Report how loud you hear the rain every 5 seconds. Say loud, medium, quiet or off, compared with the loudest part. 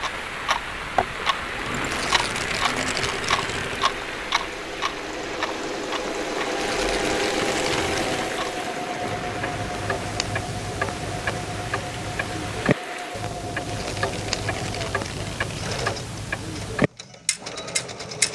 loud, loud, medium, off.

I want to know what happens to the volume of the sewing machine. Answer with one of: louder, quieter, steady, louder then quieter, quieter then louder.
louder then quieter.